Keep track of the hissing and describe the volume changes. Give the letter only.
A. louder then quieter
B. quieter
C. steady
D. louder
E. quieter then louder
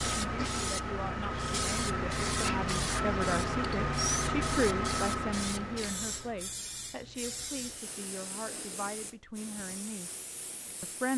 B.